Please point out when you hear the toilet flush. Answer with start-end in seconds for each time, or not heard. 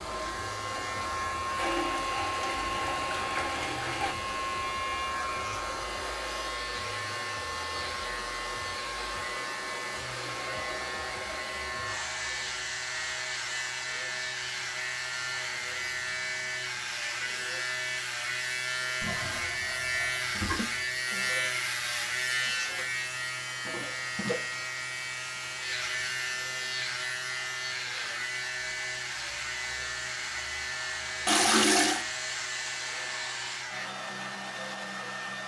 1.6-4.2, 19.0-20.9, 31.2-32.0.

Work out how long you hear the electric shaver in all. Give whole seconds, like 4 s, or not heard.
34 s.